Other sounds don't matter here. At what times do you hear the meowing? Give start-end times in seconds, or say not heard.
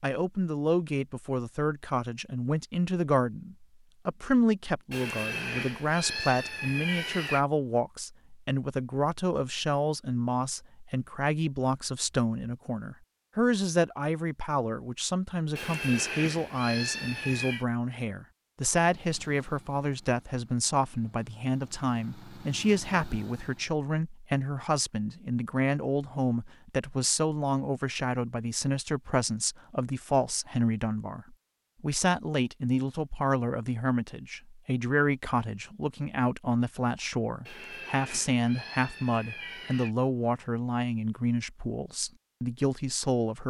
4.9-7.5, 15.6-17.6, 37.5-40.0.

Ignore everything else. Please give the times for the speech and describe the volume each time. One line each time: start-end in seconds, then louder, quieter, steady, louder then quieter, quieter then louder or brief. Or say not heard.
0.0-43.4 steady.